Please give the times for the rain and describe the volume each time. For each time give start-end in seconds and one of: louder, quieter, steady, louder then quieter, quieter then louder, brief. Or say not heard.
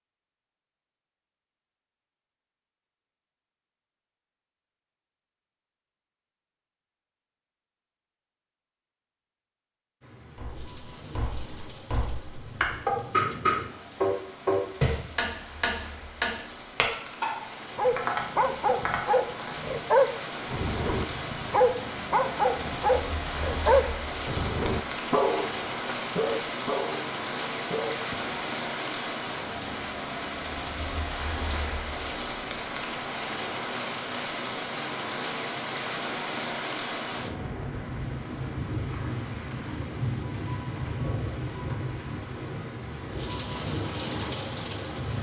10.0-45.1 louder.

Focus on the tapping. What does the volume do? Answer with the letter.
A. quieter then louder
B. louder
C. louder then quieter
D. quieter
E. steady
C.